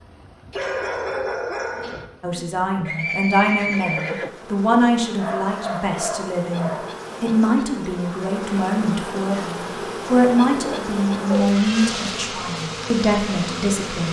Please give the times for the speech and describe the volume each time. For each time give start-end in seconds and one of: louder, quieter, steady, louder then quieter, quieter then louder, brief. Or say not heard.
2.2-14.0 steady.